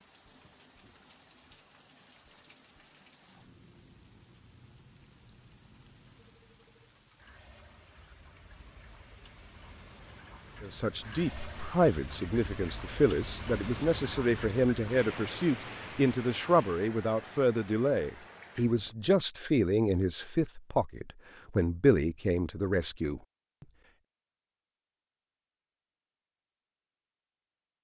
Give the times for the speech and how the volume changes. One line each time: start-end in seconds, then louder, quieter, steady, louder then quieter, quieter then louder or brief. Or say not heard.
10.6-23.2 steady.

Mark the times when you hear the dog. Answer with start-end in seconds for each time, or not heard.
not heard.